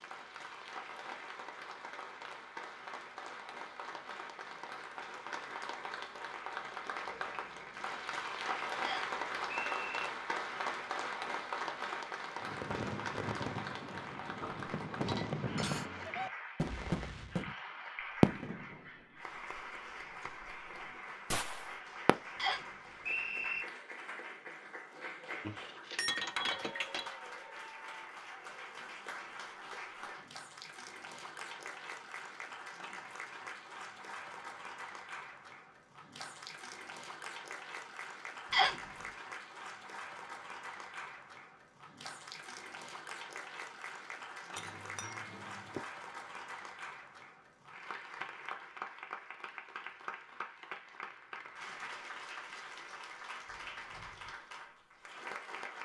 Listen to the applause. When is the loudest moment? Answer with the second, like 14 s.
9 s.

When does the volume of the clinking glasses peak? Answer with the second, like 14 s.
26 s.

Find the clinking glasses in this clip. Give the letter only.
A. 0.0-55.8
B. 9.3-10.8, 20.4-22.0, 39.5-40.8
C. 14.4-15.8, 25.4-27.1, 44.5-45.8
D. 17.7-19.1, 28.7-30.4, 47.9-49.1
C.